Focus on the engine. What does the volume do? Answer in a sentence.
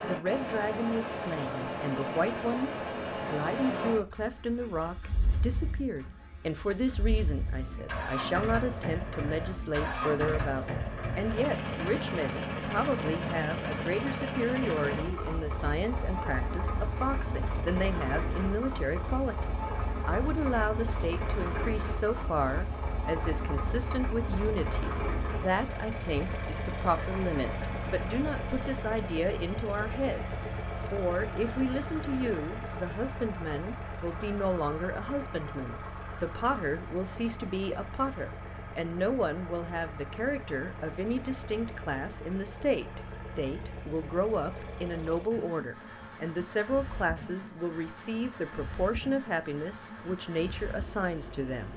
The loudness of the engine goes down.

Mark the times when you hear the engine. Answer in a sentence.
The engine can be heard from 0.0 to 51.7 s.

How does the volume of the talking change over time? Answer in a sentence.
The loudness of the talking stays about the same.